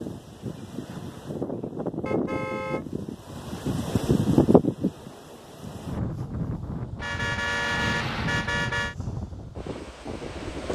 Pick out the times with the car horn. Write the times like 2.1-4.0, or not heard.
2.0-3.0, 7.0-8.9.